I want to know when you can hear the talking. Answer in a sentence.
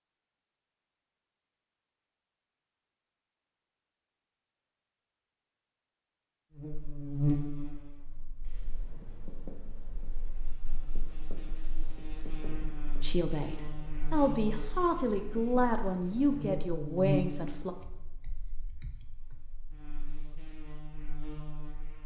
You can hear the talking from 12.8 to 17.8 s.